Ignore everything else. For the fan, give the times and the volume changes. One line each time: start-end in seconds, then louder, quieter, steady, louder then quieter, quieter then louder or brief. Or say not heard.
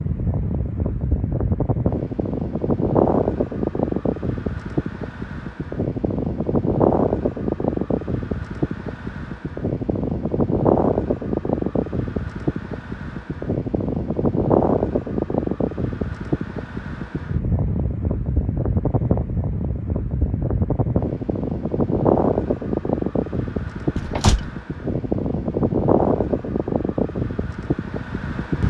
0.0-28.6 steady.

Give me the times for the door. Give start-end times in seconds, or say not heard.
23.9-24.5.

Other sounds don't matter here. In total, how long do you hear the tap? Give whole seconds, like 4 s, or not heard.
not heard.